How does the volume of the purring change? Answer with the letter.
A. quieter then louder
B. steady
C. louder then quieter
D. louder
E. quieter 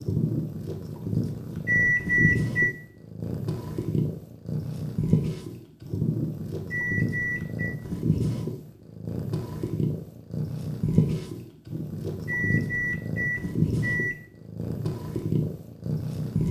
B.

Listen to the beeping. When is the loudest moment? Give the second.
2 s.